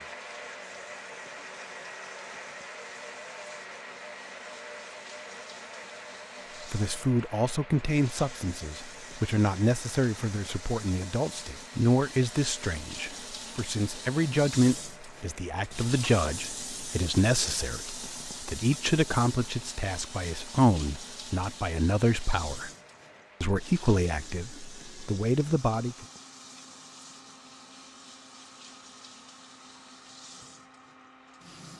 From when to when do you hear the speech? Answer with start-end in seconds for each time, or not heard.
6.7-22.7, 23.4-26.1.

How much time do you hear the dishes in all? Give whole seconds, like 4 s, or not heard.
not heard.